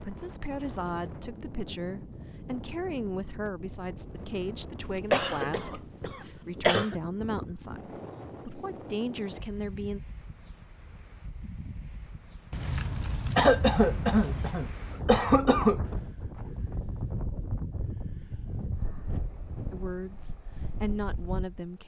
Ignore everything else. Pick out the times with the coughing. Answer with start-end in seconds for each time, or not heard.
4.8-7.0, 13.3-15.8.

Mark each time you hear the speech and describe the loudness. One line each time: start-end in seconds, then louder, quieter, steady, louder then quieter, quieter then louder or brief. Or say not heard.
0.0-10.0 steady
19.7-21.8 brief.